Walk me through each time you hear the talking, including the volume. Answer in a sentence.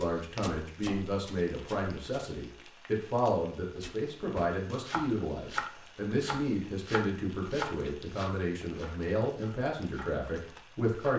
The talking can be heard from 0.0 to 11.1 s, at a steady volume.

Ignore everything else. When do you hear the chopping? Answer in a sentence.
You can hear the chopping from 0.0 to 2.2 s and from 3.8 to 11.1 s.